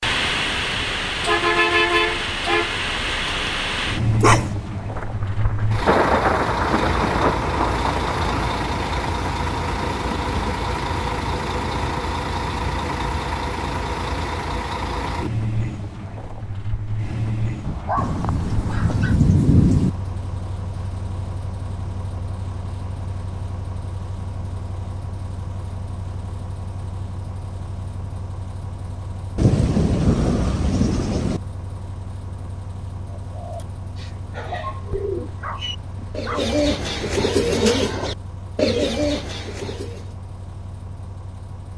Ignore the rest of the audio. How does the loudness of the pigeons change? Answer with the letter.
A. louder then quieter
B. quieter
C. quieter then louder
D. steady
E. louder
E.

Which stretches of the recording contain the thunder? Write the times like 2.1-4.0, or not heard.
5.0-8.6, 17.9-19.9, 29.4-31.4.